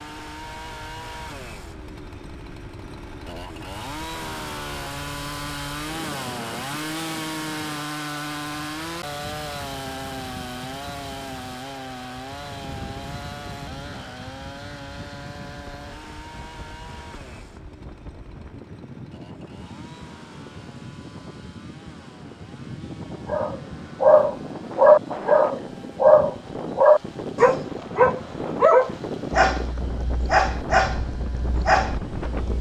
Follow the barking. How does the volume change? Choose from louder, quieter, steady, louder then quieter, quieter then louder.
quieter.